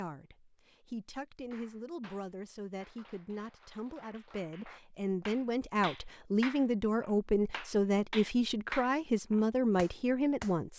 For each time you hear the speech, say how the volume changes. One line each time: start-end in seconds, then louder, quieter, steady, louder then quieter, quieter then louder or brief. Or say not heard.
0.0-10.7 louder.